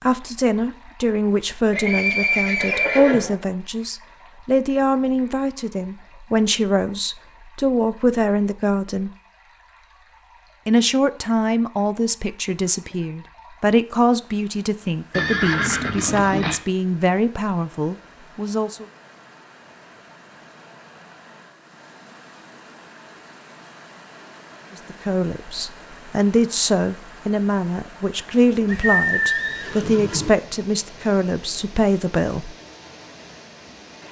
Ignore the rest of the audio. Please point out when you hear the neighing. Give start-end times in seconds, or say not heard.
1.7-3.4, 15.1-16.6, 28.6-30.3.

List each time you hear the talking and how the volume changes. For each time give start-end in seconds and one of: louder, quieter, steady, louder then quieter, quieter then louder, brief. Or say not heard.
0.0-9.1 steady
10.7-18.9 steady
24.8-32.5 steady.